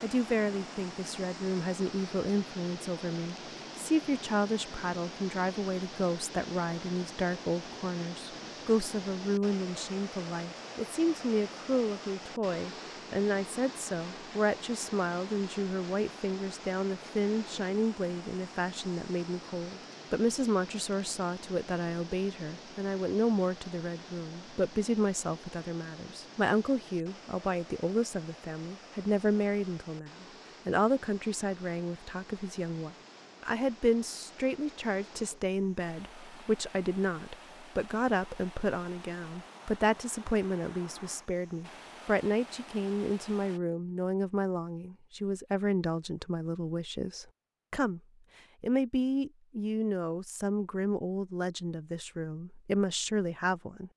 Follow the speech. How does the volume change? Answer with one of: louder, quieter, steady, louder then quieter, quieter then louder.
steady.